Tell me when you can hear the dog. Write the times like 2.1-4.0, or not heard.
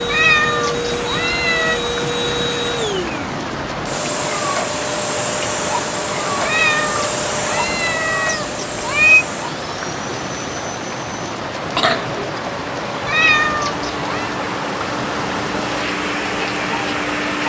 not heard.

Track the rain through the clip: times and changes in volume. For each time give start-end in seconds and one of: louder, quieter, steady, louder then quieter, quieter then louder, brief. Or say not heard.
0.0-17.4 steady.